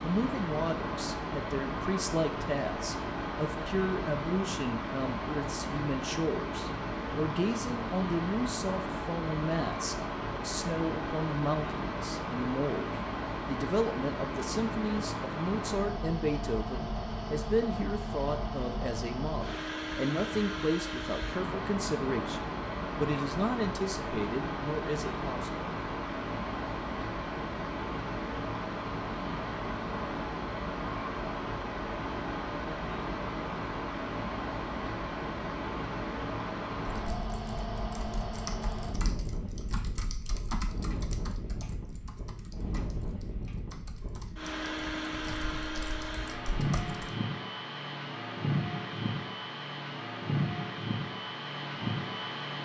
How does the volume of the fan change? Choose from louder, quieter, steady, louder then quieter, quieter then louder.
steady.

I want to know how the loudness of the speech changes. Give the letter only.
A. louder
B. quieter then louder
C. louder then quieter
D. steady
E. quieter
D.